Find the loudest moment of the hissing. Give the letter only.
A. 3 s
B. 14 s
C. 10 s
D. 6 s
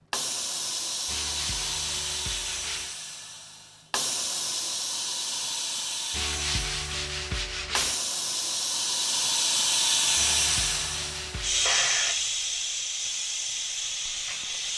C.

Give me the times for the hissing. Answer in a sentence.
The hissing can be heard from 0.1 to 14.7 s.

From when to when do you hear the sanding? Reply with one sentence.
You can hear the sanding from 1.1 to 3.0 s, from 6.1 to 8.0 s and from 10.2 to 11.8 s.